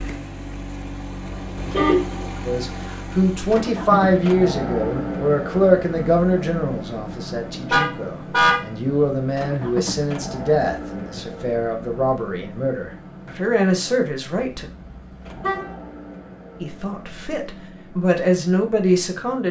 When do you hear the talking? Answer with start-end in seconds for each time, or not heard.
2.5-14.7, 16.6-19.4.